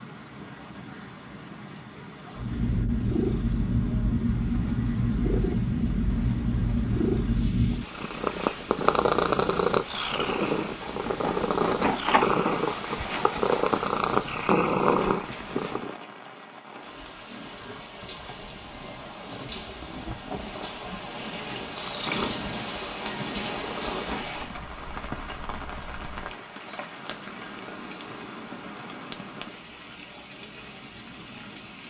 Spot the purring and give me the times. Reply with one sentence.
The purring can be heard from 2.4 to 15.9 s and from 21.5 to 24.5 s.